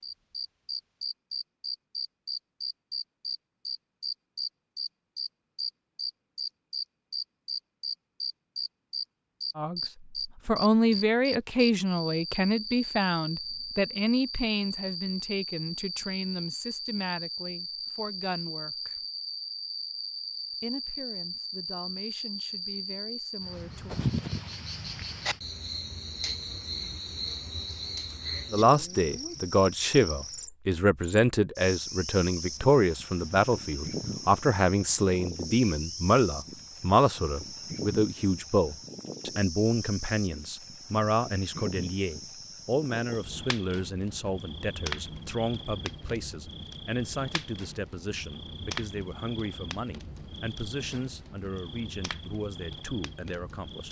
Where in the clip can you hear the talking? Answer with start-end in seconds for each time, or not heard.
9.6-19.1, 20.6-23.9, 28.5-53.8.